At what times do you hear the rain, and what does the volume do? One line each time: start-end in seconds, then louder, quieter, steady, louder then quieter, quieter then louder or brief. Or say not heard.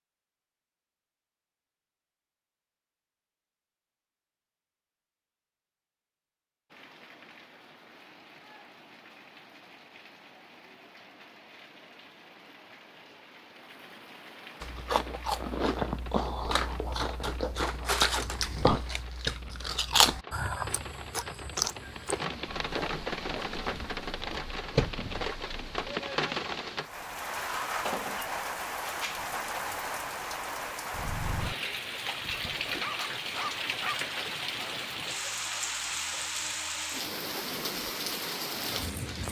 6.7-39.2 louder.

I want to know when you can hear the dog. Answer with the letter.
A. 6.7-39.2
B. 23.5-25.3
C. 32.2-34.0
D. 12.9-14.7
C.